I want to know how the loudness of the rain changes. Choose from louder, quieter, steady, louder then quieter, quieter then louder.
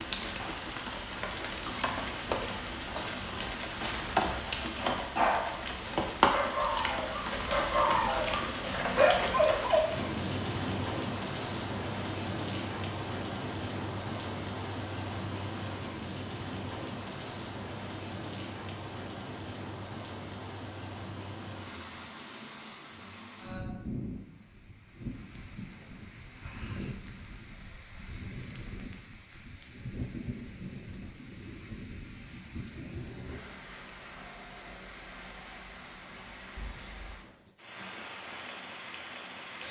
quieter.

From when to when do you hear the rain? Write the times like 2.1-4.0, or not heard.
0.0-39.6.